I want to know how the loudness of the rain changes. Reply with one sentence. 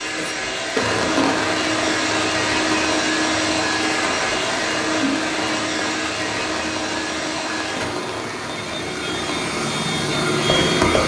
The loudness of the rain goes down.